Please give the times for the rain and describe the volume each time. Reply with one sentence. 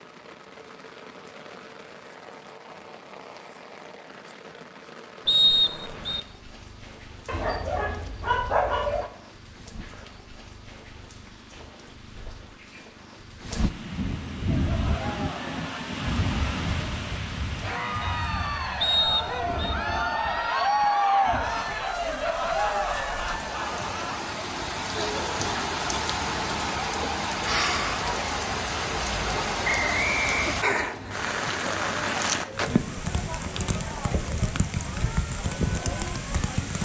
You can hear the rain from 0.0 to 36.8 s, getting louder.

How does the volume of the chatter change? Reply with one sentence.
The volume of the chatter goes up, then down.